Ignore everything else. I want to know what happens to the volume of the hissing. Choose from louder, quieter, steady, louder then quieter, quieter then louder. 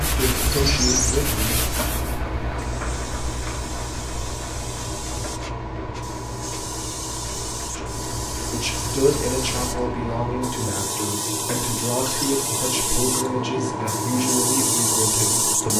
louder.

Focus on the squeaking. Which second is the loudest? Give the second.
1 s.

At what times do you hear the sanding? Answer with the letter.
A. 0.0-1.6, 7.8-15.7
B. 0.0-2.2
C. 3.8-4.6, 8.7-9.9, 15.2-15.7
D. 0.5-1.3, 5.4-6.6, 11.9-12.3
B.